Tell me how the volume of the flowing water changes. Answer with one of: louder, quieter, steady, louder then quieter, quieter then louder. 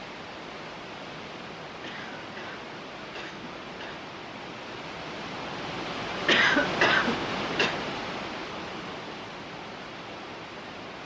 louder then quieter.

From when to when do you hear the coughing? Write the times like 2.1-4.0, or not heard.
1.8-4.0, 6.2-7.8.